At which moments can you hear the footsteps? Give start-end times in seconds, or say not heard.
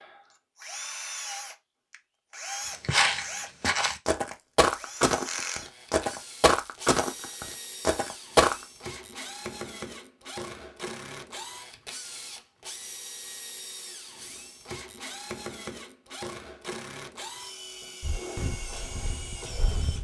2.7-8.7, 18.0-19.9.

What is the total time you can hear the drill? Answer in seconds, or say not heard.
20 s.